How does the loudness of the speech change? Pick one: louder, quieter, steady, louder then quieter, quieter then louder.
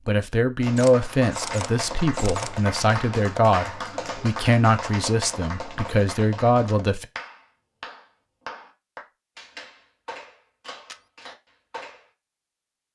steady.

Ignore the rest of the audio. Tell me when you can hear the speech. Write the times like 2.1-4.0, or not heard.
0.1-7.0.